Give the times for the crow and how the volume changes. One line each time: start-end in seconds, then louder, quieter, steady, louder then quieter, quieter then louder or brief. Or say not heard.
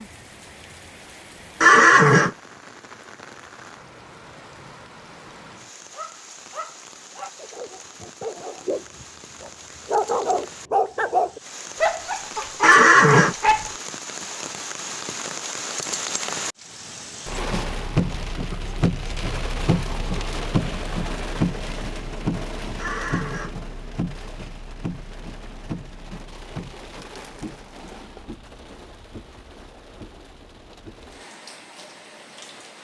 not heard.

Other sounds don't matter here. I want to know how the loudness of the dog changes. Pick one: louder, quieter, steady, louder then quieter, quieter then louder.
louder then quieter.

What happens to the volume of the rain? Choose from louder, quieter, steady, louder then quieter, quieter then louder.
louder then quieter.